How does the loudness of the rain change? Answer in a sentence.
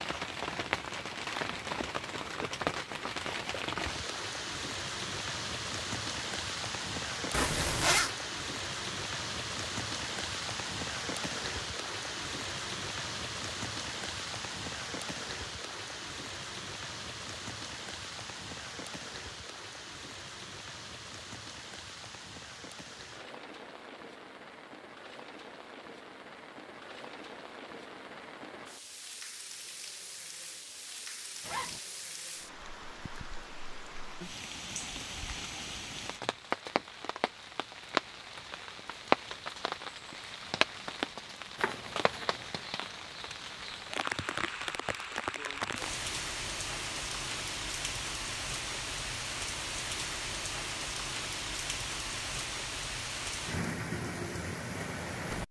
The loudness of the rain goes down, then up.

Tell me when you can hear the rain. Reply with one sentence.
You can hear the rain from 0.0 to 55.4 s.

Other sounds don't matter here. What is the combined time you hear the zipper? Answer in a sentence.
You can hear the zipper for 2 seconds altogether.